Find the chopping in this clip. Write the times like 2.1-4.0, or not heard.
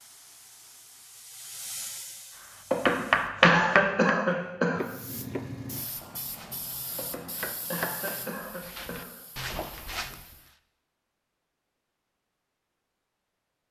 2.9-10.2.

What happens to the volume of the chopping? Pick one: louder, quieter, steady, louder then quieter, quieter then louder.
quieter then louder.